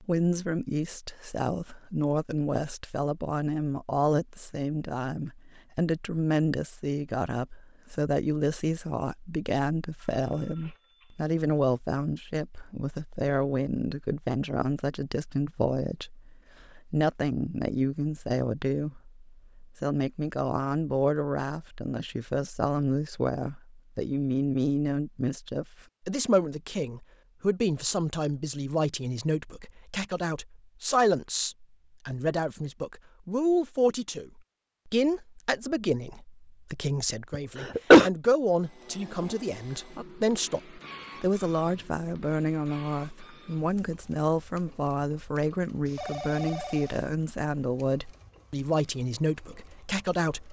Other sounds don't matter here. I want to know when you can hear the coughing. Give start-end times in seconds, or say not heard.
37.3-38.1.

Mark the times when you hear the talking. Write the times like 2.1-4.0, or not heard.
0.0-50.4.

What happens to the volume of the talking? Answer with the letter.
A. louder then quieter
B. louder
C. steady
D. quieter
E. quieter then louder
C.